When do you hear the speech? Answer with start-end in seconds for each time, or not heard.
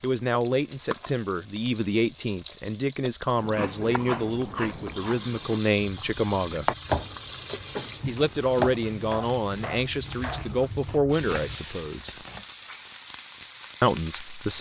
0.0-6.7, 8.1-12.2, 13.8-14.5.